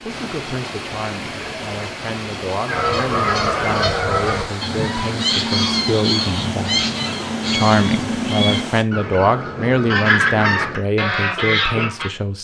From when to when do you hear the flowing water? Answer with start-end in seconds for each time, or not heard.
0.0-8.8.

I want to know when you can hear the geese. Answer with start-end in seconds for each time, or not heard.
2.6-12.1.